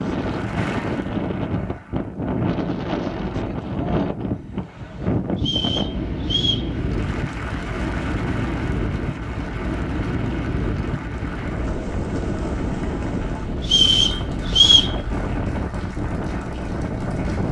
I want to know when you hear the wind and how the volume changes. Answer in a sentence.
You can hear the wind from 0.0 to 17.4 s, at a steady volume.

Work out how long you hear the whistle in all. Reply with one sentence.
The whistle can be heard for 3 seconds in total.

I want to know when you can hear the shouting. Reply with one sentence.
You can't hear the shouting here.